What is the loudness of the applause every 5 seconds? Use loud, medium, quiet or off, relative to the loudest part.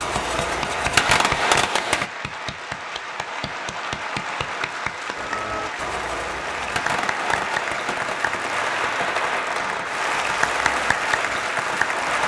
medium, loud, loud.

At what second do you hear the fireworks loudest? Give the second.
1 s.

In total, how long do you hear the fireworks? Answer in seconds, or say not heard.
9 s.